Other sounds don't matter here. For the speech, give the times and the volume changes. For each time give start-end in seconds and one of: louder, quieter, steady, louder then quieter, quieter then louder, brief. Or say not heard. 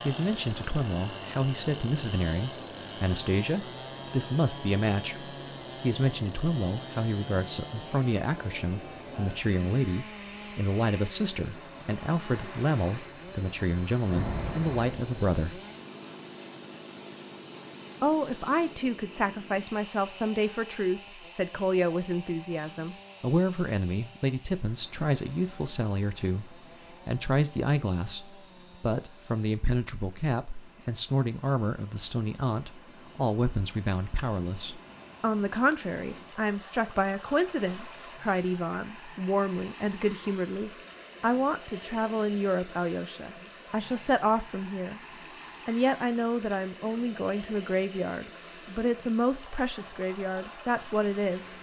0.0-15.6 steady
18.0-45.0 steady
45.6-51.5 steady.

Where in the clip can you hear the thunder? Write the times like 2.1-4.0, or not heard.
14.1-15.4.